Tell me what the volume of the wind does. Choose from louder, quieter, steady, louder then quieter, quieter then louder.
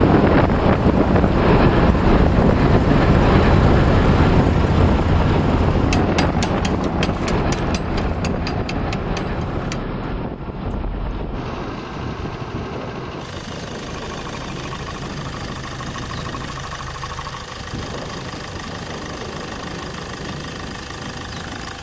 quieter.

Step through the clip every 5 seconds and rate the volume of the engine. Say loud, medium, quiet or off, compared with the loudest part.
loud, loud, medium, medium, medium.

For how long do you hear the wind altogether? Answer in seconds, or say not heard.
22 s.